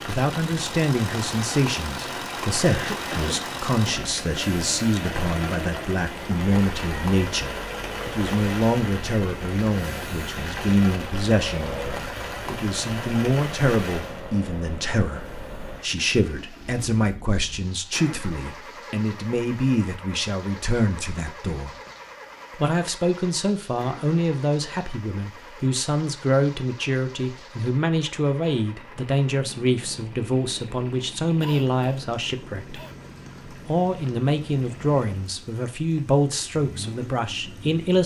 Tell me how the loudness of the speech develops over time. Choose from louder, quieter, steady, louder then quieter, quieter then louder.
steady.